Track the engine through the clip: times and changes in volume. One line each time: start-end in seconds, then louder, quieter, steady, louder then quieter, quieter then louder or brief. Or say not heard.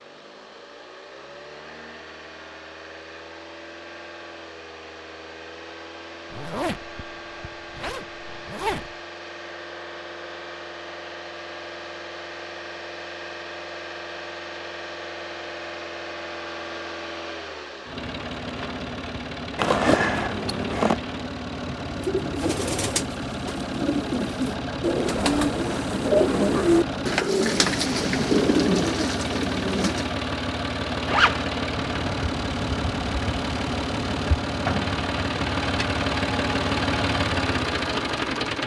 0.0-38.6 louder.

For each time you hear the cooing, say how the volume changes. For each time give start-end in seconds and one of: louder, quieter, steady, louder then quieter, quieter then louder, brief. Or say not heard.
21.9-30.1 louder.